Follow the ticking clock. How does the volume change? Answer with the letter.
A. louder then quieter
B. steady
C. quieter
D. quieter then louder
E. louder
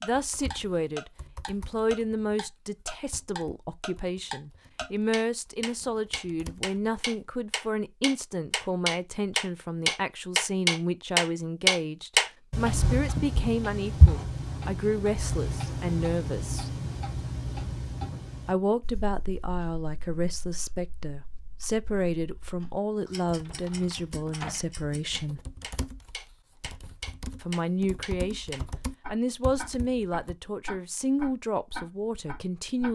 D.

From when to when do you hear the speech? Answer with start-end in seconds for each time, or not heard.
0.0-16.7, 18.4-25.4, 27.4-32.9.